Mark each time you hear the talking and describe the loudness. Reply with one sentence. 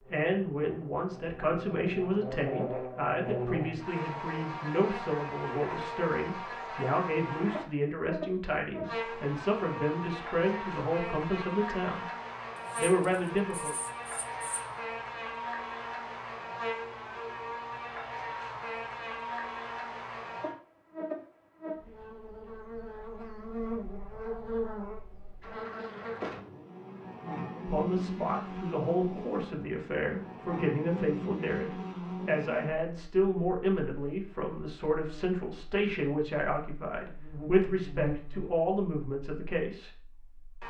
The talking can be heard from 0.0 to 12.1 s, at a steady volume; briefly from 12.8 to 13.8 s; and from 27.6 to 39.9 s, at a steady volume.